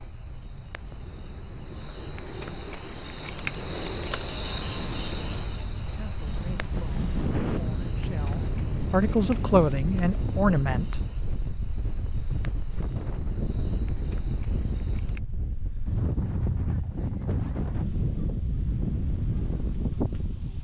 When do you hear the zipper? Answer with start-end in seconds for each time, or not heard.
not heard.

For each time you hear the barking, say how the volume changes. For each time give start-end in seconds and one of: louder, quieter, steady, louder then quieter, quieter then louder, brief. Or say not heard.
not heard.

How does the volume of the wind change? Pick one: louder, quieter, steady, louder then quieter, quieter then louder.
louder.